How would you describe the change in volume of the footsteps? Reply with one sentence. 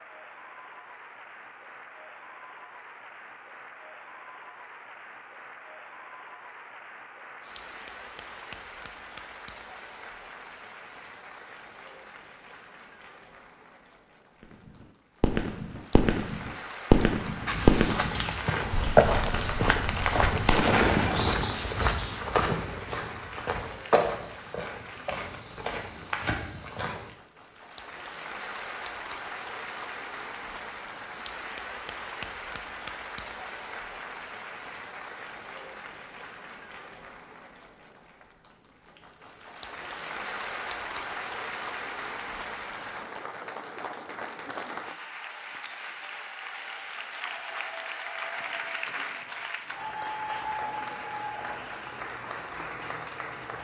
The loudness of the footsteps goes down.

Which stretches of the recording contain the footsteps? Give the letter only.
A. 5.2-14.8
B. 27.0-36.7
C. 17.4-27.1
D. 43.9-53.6
C.